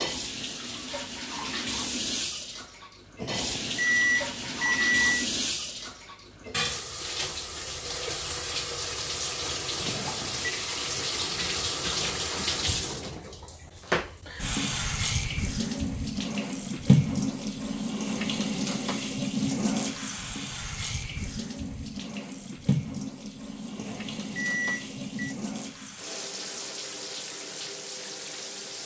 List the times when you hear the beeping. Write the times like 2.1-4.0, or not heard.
3.2-5.2, 9.8-10.6, 23.8-25.4.